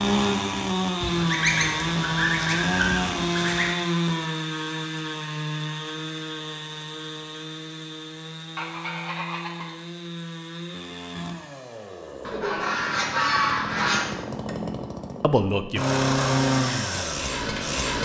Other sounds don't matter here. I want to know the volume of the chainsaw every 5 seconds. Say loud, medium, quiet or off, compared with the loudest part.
loud, medium, medium, loud.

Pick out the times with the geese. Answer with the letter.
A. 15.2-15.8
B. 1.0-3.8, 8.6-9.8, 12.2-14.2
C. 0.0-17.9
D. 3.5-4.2
B.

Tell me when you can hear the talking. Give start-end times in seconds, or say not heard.
15.2-15.8.